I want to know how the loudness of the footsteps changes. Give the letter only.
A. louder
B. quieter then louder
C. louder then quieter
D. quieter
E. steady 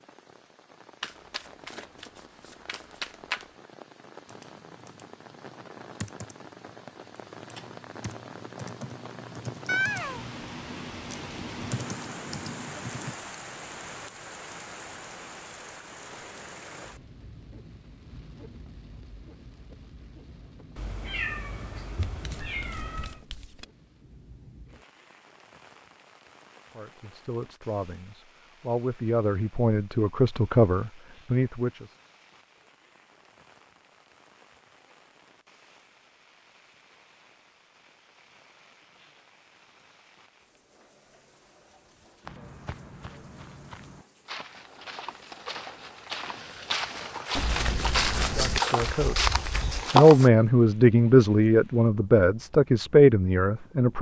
A.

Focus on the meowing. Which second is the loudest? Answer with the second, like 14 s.
10 s.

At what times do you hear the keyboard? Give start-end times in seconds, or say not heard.
4.2-13.2.